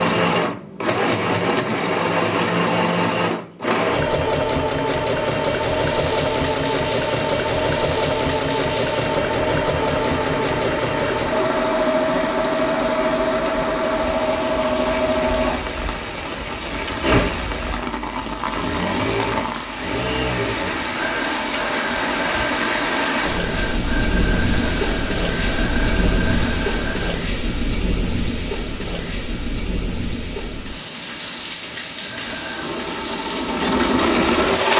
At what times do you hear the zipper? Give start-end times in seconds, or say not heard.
not heard.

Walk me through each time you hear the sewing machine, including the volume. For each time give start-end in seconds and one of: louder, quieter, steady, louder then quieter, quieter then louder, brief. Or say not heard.
0.0-27.2 quieter
31.9-34.7 brief.